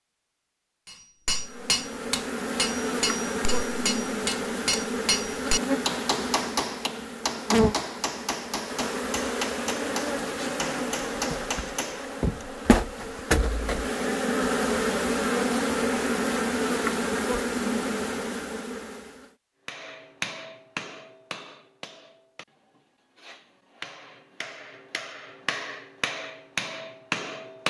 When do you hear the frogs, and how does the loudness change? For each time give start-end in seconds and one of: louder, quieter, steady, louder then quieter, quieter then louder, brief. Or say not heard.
not heard.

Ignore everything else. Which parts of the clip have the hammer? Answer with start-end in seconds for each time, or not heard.
0.8-12.4, 19.6-27.6.